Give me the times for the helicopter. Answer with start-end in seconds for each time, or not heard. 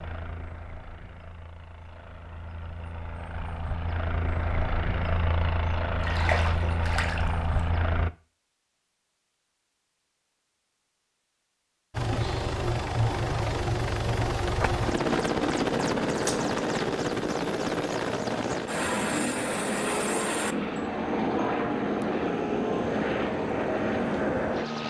0.0-8.1, 11.9-24.8.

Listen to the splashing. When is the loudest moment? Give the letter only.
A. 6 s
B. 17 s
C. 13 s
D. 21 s
A.